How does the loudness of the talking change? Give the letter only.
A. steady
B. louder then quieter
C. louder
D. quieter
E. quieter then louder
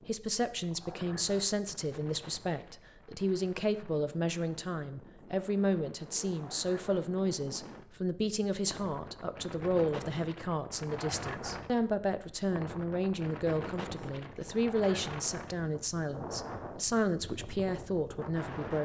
A.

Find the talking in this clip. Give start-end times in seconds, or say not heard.
0.1-18.8.